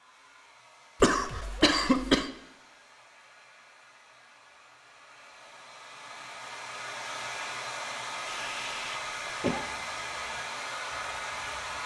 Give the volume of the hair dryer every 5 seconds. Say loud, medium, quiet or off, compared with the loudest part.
quiet, loud, loud.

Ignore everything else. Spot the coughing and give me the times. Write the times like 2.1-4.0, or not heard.
1.0-2.3, 8.2-9.7.